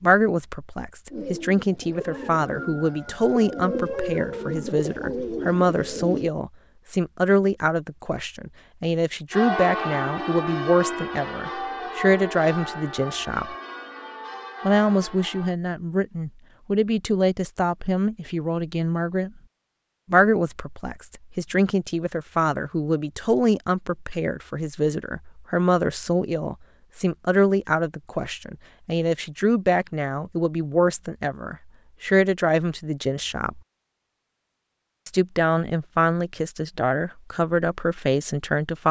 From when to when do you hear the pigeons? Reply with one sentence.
The pigeons can be heard from 1.1 to 6.3 s.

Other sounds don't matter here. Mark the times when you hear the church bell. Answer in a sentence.
The church bell can be heard from 9.3 to 15.6 s.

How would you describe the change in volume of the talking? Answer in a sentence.
The loudness of the talking stays about the same.